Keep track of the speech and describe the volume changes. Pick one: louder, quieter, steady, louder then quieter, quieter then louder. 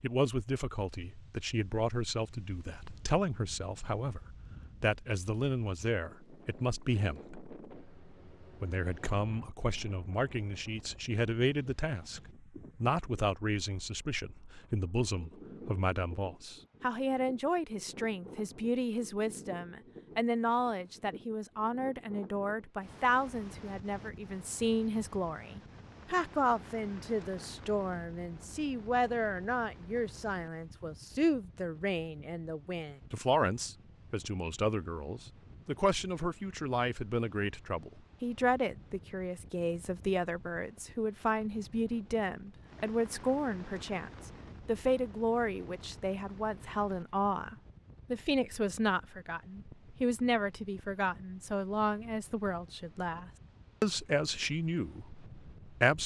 steady.